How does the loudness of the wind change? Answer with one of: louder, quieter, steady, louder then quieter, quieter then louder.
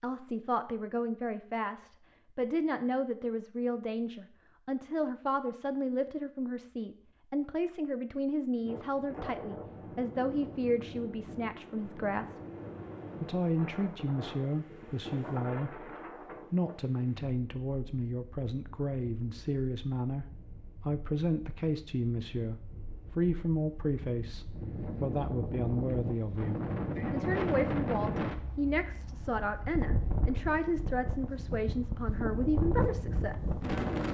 quieter then louder.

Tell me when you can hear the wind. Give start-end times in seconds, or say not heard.
8.6-34.0.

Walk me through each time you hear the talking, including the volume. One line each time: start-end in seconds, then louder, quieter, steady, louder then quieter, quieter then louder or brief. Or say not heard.
0.0-12.4 steady
13.2-15.9 brief
16.5-33.4 steady.